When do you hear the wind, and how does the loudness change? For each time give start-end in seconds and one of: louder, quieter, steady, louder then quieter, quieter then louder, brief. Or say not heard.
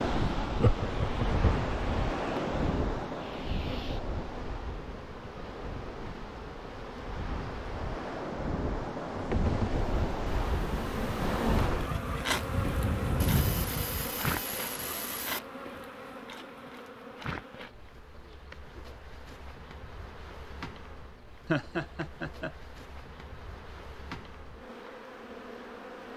0.0-14.2 quieter then louder.